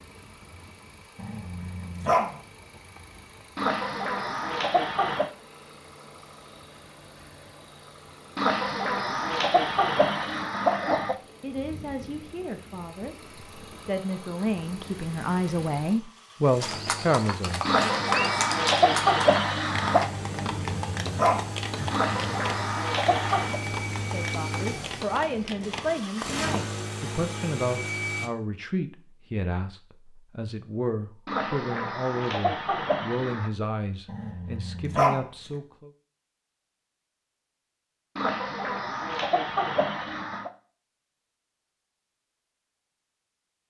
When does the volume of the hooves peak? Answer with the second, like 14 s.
18 s.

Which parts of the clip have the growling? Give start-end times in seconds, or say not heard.
1.1-2.4, 20.3-22.4, 34.0-35.2.